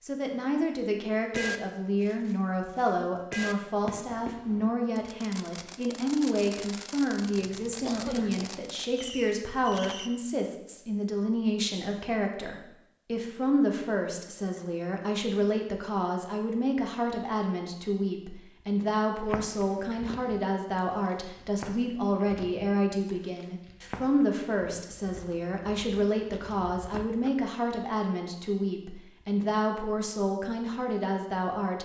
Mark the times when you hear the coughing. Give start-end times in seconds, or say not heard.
7.3-8.5.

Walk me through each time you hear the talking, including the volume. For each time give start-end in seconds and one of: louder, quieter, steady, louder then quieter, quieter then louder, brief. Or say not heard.
0.0-31.8 steady.